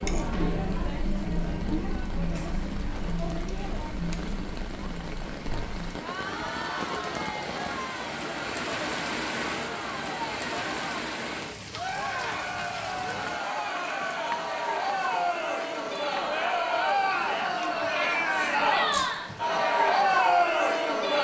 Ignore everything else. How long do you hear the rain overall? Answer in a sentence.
The rain can be heard for 21 seconds in total.